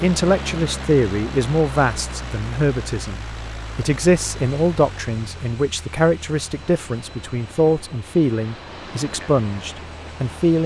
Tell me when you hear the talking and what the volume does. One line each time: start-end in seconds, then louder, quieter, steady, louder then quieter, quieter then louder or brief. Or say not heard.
0.0-10.6 steady.